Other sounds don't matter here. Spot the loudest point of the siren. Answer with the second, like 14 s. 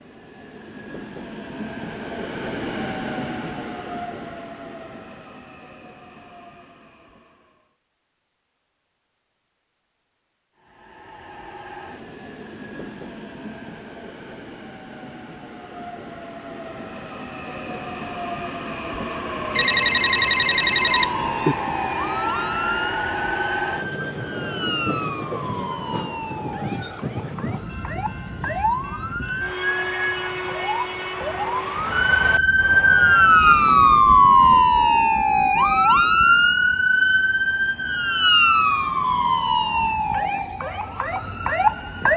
34 s.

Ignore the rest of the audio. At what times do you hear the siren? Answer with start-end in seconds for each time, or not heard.
20.9-42.1.